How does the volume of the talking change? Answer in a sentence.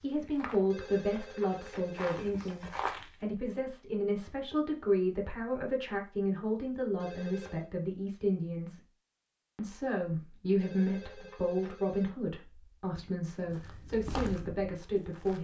The volume of the talking stays about the same.